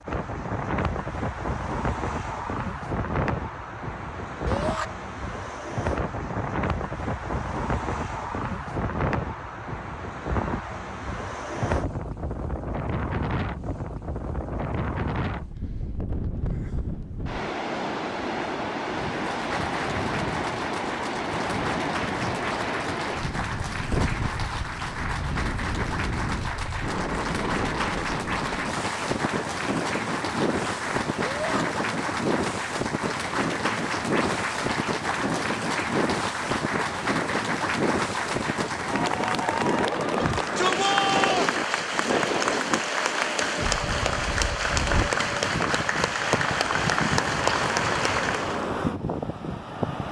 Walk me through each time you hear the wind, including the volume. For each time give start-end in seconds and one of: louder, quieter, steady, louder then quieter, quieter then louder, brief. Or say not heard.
0.0-50.0 steady.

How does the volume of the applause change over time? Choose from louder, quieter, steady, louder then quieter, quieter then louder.
louder.